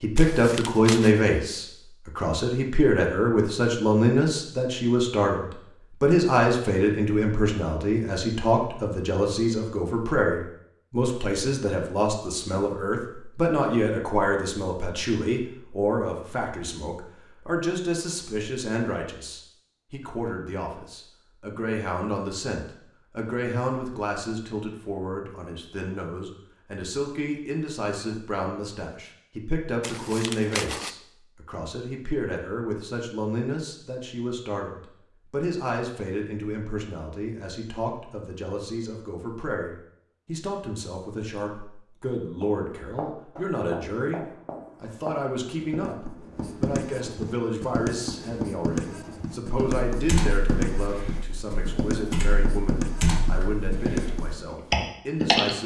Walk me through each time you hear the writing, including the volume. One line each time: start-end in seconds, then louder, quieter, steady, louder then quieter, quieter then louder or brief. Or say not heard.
42.4-54.5 louder.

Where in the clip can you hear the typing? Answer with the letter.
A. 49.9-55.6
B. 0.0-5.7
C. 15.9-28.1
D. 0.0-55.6
A.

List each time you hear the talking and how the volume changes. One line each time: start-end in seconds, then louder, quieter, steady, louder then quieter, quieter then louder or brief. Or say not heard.
0.0-55.6 quieter.